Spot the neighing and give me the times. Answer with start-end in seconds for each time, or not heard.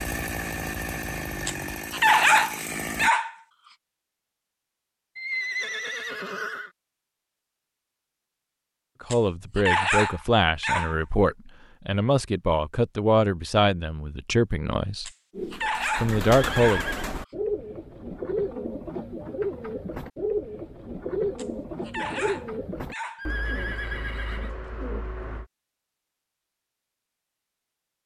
5.2-6.7, 16.2-17.1, 23.1-24.5.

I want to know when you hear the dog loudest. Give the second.
2 s.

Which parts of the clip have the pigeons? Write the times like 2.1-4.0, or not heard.
15.3-25.4.